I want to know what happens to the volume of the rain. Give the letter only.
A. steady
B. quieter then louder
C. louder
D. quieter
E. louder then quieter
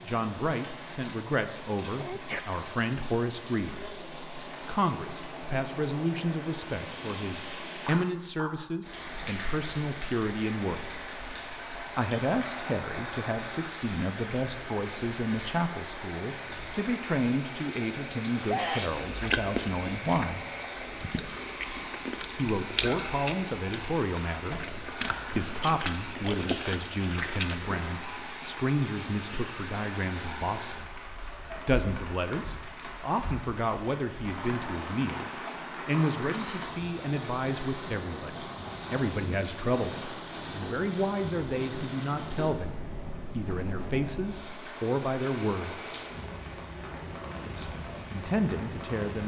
A.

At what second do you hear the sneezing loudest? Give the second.
19 s.